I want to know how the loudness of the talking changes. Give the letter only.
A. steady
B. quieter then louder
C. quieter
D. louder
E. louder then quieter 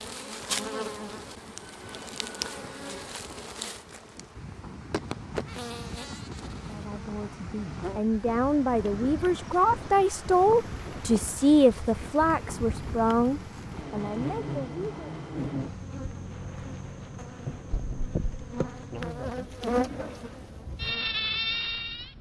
E.